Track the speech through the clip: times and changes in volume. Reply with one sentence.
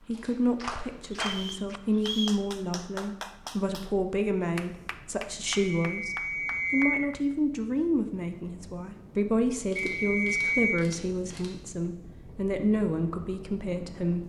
You can hear the speech from 0.1 to 14.2 s, at a steady volume.